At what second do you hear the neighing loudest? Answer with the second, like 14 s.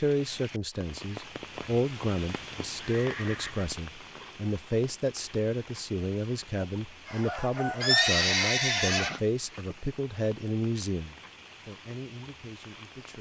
8 s.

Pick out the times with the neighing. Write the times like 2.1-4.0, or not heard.
2.8-3.8, 7.8-9.2.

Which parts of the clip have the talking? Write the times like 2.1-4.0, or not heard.
0.0-13.1.